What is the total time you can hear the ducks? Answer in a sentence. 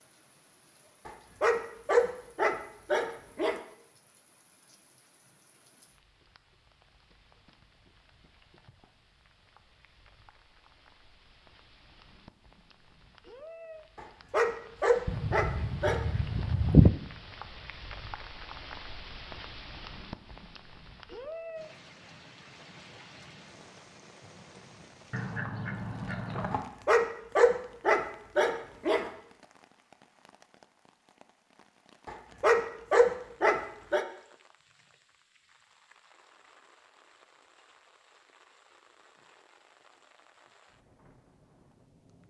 The ducks can be heard for 3 seconds in total.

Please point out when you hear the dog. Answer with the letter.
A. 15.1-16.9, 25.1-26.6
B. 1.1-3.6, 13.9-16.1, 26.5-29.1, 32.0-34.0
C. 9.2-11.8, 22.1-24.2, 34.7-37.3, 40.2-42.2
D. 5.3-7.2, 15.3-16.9
B.